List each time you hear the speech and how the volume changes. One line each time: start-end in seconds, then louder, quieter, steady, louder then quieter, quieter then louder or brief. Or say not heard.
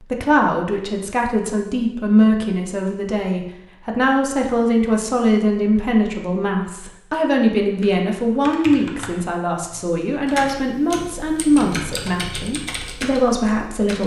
0.0-14.0 steady.